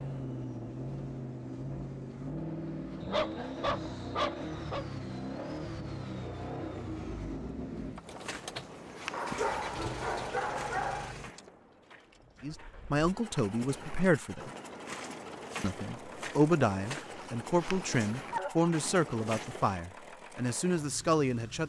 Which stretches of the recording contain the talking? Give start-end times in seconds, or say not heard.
12.4-14.5, 15.6-21.6.